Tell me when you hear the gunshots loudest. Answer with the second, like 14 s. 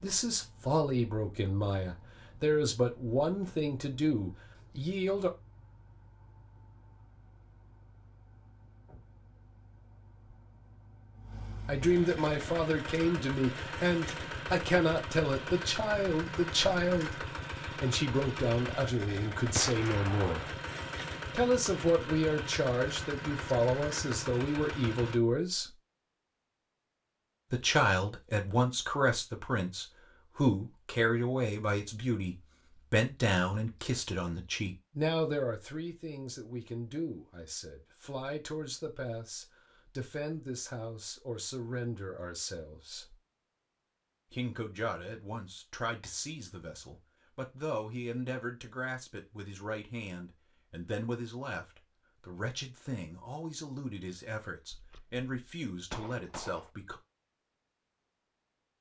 20 s.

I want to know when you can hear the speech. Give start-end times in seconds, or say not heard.
0.0-5.3, 11.7-20.6, 21.3-25.8, 27.5-43.1, 44.3-57.0.